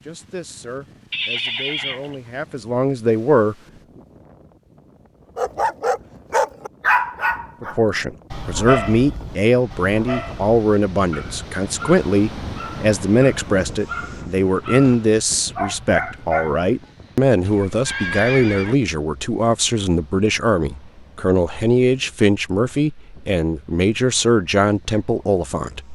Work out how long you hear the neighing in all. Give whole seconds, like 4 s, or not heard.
2 s.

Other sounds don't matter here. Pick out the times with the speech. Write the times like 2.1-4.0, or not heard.
0.0-3.5, 7.6-25.9.